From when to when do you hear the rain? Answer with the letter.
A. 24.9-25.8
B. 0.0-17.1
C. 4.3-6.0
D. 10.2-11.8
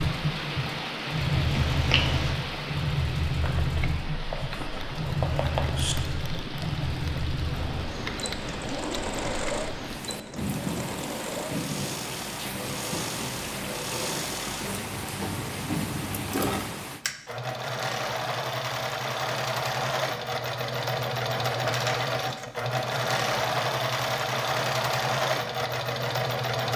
B.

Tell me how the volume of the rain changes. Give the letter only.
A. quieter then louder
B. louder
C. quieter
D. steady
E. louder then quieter
D.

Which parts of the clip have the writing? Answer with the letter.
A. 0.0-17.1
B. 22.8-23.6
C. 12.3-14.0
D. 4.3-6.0
D.